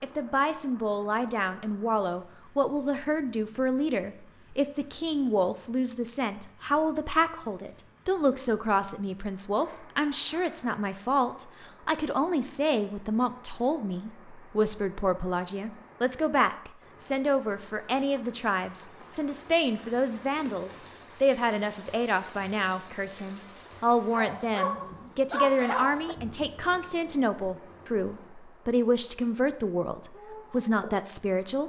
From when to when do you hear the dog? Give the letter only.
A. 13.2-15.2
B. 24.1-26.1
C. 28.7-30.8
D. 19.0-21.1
B.